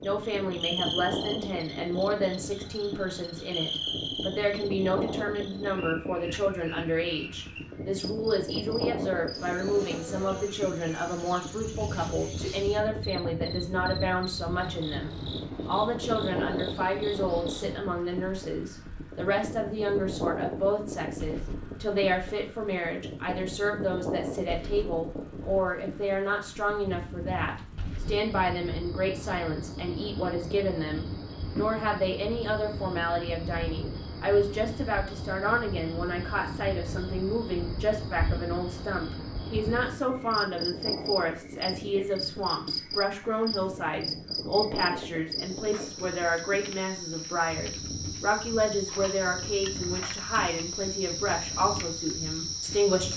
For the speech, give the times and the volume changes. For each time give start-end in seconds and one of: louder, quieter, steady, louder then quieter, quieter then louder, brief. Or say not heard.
0.0-53.1 steady.